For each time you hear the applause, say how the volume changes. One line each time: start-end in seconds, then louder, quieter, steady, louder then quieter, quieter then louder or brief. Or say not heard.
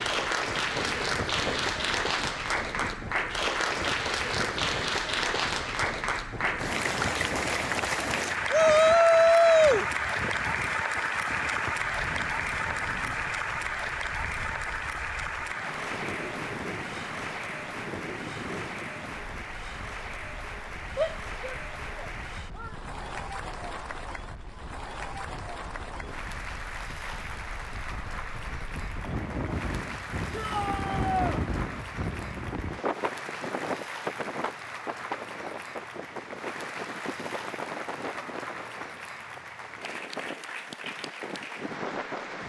0.0-42.4 quieter.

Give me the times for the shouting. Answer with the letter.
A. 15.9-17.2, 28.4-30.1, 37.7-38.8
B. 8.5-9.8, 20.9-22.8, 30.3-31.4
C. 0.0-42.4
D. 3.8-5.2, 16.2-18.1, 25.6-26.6
B.